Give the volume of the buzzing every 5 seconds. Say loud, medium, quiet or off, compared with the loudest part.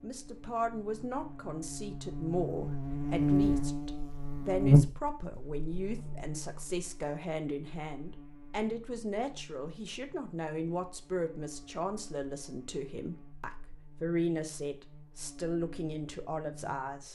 loud, quiet, quiet, quiet.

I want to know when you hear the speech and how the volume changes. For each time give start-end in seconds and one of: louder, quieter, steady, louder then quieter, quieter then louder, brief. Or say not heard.
0.0-17.1 steady.